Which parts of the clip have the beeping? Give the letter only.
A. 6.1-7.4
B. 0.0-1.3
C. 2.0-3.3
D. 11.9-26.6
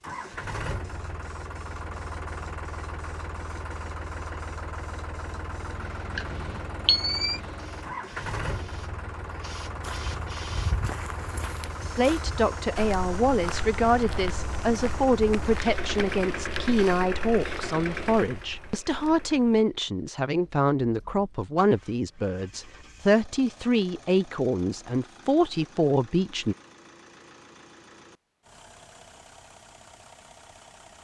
A.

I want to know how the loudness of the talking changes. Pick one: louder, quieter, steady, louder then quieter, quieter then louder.
steady.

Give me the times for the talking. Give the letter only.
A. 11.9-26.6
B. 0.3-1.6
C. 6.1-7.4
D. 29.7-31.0
A.